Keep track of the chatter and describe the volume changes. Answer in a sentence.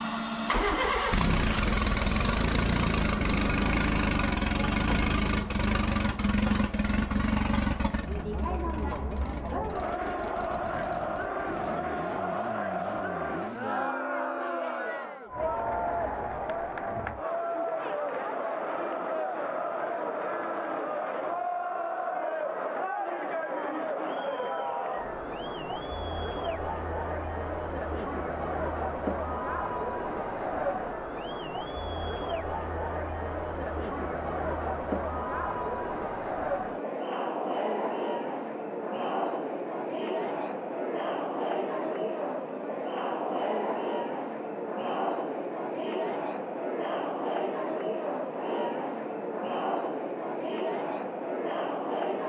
The loudness of the chatter stays about the same.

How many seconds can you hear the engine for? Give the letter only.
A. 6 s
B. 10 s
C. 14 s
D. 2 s
C.